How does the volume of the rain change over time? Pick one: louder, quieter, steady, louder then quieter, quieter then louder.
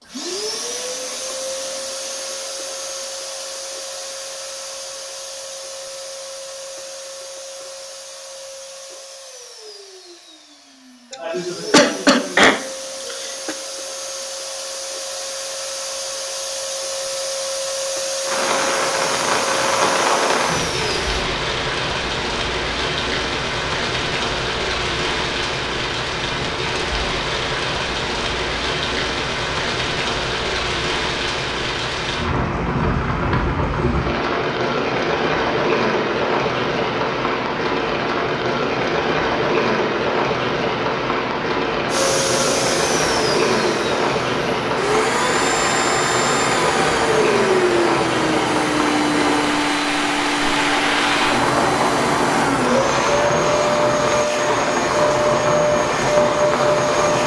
steady.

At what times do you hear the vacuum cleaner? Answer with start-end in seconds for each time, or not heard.
0.0-21.2, 41.9-57.2.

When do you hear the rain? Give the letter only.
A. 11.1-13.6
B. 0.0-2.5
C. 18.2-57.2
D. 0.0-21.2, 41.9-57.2
C.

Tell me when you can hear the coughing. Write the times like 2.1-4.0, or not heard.
11.1-13.6.